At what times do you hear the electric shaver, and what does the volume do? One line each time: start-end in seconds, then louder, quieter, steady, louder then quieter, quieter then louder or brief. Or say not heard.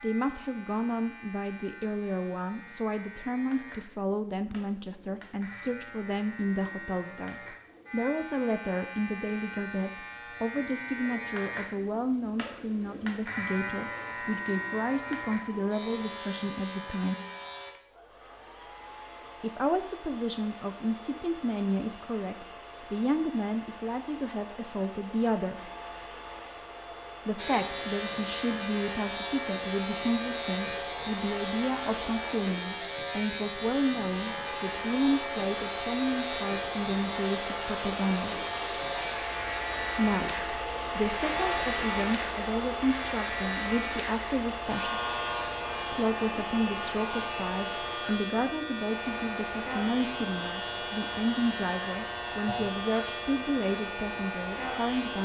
0.0-17.8 louder
27.4-55.2 steady.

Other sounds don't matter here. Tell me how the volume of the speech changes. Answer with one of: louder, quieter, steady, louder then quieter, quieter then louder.
steady.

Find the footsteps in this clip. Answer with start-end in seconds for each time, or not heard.
not heard.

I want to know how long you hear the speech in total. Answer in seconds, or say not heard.
49 s.